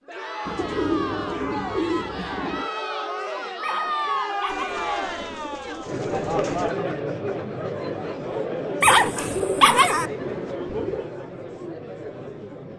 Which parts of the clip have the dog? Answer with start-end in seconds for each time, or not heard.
3.6-4.8, 8.8-10.1.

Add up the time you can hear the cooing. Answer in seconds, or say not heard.
7 s.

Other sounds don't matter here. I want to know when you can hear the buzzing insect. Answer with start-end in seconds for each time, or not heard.
not heard.